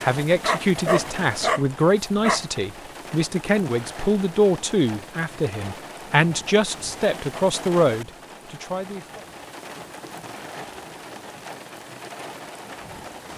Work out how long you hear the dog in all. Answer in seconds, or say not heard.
2 s.